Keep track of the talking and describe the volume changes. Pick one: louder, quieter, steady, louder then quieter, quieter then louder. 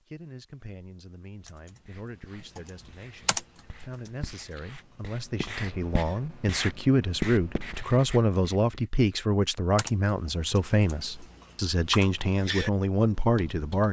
louder.